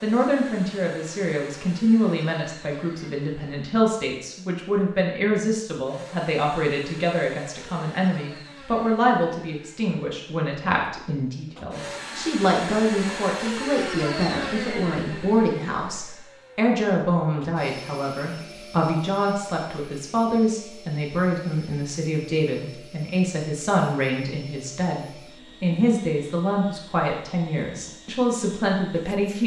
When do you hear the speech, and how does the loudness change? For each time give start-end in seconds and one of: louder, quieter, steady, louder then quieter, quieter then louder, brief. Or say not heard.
0.0-29.4 steady.